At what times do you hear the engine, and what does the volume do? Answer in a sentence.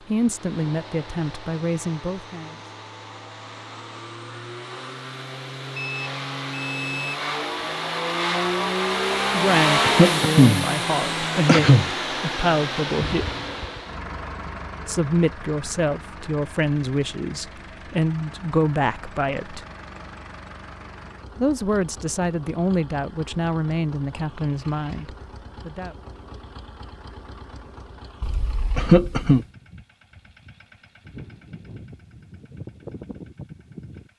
You can hear the engine from 0.0 to 34.1 s, getting louder then quieter.